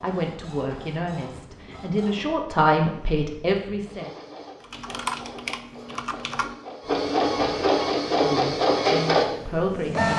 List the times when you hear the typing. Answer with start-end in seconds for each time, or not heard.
4.6-7.0.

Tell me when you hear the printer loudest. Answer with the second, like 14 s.
9 s.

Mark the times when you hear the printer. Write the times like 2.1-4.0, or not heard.
0.0-10.1.